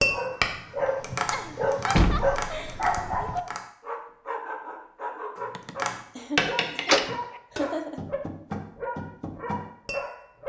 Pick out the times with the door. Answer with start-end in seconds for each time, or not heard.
1.9-3.4, 6.8-7.2.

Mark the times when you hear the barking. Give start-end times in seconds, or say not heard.
0.0-10.4.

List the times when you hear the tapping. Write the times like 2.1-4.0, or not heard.
0.0-3.6, 5.3-10.1.